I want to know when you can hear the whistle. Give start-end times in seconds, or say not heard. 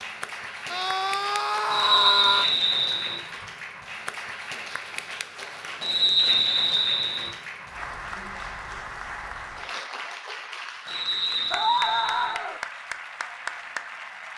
1.7-3.2, 5.8-7.3, 10.8-12.3.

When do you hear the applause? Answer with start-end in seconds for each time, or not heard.
0.0-14.3.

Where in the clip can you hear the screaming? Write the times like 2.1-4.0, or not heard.
0.7-2.5, 11.5-12.6.